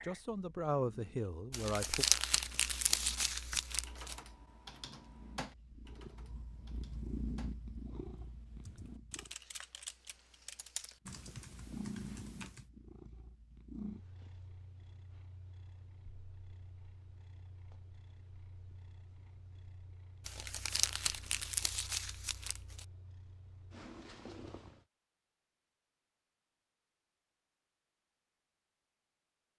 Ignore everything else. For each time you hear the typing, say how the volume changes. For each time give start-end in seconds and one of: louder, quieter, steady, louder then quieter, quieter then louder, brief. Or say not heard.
3.4-12.7 quieter then louder.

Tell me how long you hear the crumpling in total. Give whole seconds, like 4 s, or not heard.
5 s.